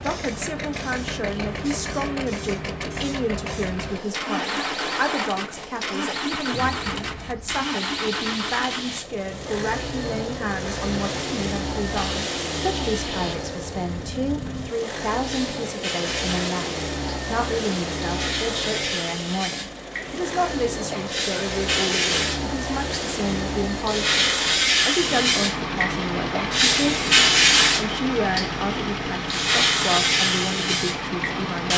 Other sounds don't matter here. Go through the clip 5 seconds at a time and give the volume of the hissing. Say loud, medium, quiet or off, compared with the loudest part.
quiet, quiet, quiet, medium, loud, loud, loud.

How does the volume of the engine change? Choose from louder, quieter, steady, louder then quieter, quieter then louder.
steady.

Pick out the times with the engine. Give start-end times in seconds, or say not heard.
0.0-31.7.